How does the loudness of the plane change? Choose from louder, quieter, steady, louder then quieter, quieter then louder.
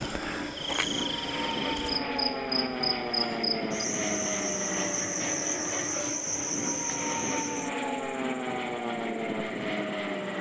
steady.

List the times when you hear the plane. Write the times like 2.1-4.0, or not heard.
0.0-10.3.